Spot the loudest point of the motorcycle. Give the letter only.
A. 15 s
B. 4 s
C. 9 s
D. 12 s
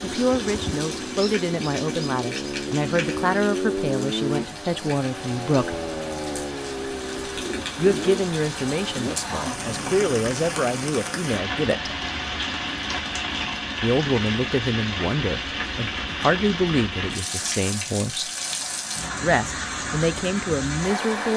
B.